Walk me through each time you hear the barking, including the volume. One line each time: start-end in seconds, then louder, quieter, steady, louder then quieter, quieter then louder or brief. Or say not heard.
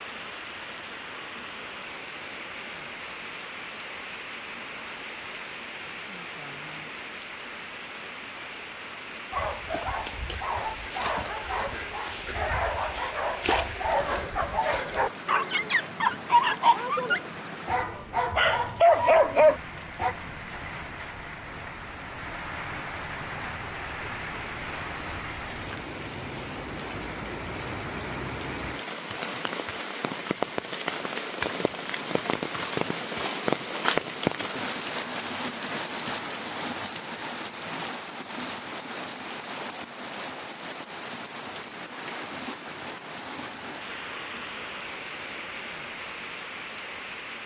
9.3-20.1 louder.